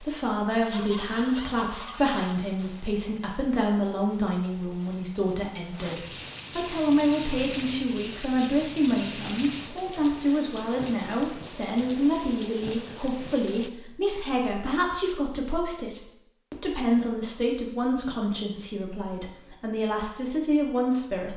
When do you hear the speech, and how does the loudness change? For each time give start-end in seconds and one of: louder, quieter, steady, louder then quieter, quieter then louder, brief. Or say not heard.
0.0-21.3 steady.